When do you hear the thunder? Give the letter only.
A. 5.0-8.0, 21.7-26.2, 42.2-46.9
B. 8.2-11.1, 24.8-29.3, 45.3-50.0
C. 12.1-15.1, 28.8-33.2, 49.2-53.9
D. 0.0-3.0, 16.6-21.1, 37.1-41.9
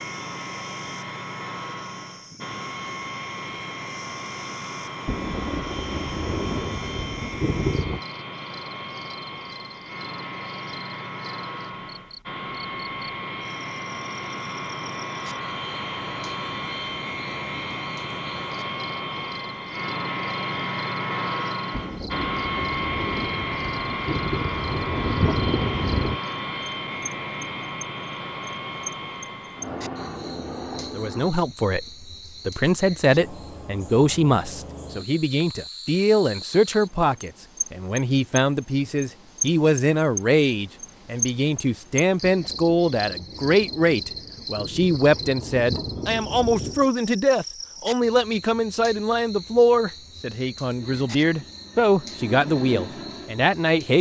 A.